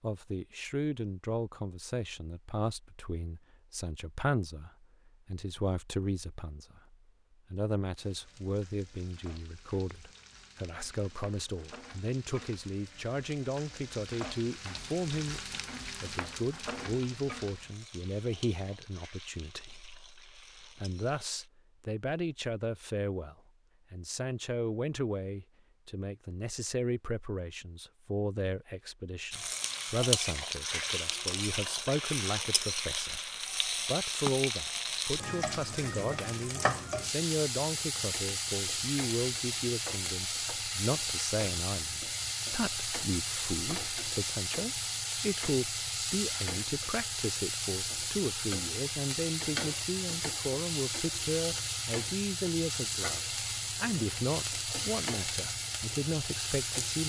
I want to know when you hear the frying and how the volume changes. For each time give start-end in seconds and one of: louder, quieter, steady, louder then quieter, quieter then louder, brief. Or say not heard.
8.0-21.5 louder then quieter
29.3-57.0 steady.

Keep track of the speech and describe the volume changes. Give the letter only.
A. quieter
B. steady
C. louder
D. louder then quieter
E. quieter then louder
B.